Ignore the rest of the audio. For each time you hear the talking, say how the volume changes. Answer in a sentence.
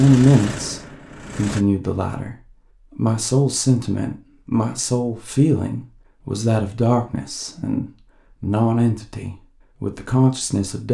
You can hear the talking briefly from 0.0 to 2.4 s; and from 3.0 to 10.8 s, at a steady volume.